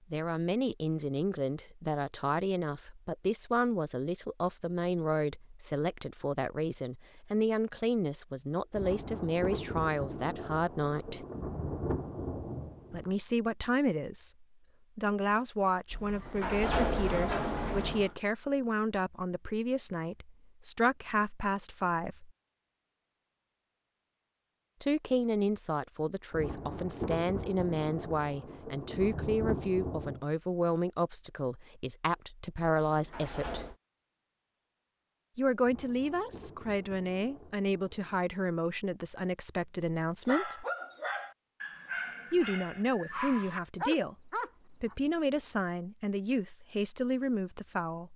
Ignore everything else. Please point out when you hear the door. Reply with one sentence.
You can hear the door from 15.9 to 18.1 s and from 32.9 to 33.8 s.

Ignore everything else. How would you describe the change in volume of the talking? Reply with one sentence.
The volume of the talking stays about the same.